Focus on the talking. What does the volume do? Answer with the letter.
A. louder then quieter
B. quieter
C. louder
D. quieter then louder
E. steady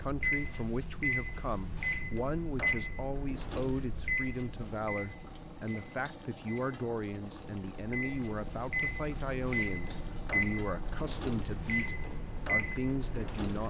E.